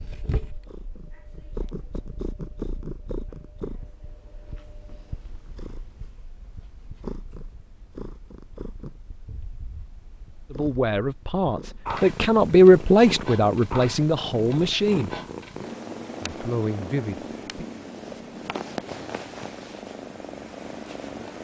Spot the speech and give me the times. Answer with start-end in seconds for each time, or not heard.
10.5-15.2, 16.2-17.6.